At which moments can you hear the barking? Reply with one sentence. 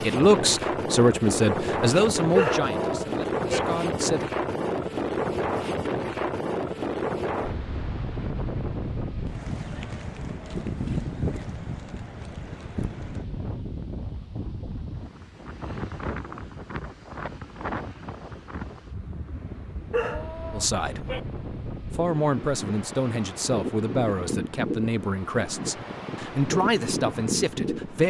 You can hear the barking from 2.4 to 3.6 s and from 19.9 to 21.2 s.